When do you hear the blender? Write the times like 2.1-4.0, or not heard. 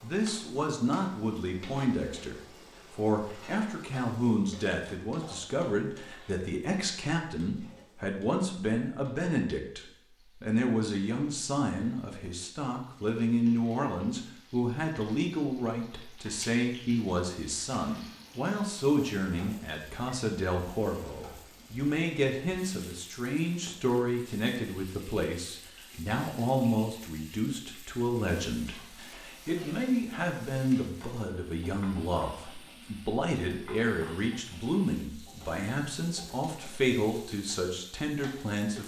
not heard.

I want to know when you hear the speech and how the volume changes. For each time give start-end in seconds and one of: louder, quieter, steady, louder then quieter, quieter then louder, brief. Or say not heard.
0.0-38.8 steady.